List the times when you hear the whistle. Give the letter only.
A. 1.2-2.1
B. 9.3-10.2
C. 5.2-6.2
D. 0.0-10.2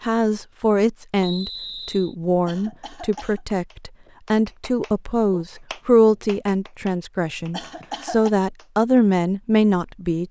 A.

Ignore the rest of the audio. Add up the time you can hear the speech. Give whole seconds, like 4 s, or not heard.
10 s.